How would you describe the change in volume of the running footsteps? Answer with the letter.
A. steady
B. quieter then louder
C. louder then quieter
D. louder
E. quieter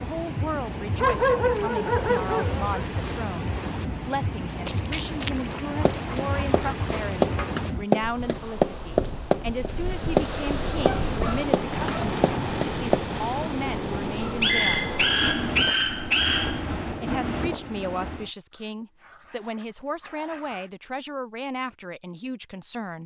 C.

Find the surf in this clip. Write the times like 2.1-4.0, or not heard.
0.0-18.3.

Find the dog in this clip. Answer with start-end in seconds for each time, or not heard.
0.9-2.8, 5.3-7.5, 10.8-12.2, 14.2-16.8, 18.5-20.7.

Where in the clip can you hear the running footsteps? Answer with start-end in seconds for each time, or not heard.
4.7-13.1.